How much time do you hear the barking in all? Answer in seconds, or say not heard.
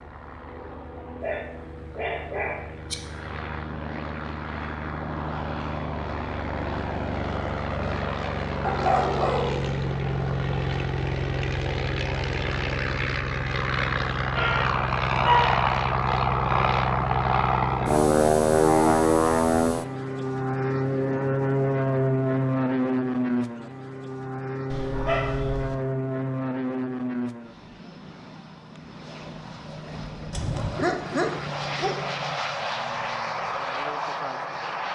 7 s.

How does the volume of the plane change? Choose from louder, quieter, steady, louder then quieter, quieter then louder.
louder then quieter.